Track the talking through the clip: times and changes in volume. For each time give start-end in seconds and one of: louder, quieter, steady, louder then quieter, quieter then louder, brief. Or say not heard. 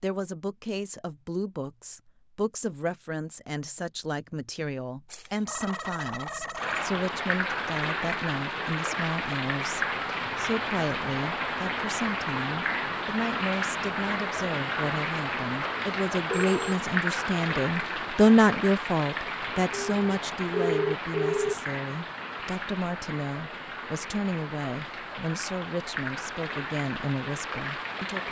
0.0-28.2 louder then quieter.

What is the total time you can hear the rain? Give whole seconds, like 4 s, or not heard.
22 s.